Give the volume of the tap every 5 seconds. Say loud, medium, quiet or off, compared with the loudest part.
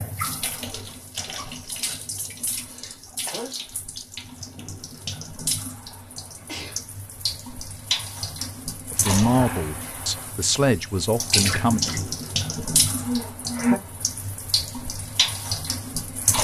medium, medium, loud, loud.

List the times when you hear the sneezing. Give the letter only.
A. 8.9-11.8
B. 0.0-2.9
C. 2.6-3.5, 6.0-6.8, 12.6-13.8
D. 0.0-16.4
C.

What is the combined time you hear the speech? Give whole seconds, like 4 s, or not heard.
3 s.